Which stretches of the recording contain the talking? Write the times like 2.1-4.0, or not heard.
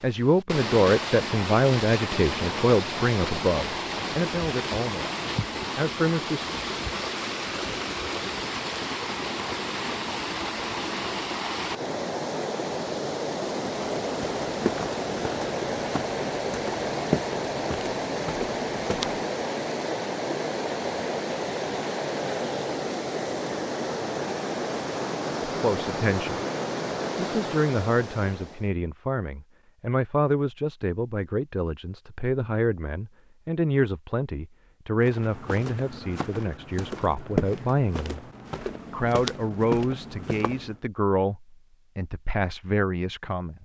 0.0-6.5, 25.4-26.4, 27.1-38.2, 38.9-43.6.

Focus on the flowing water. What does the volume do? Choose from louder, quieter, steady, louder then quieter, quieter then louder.
steady.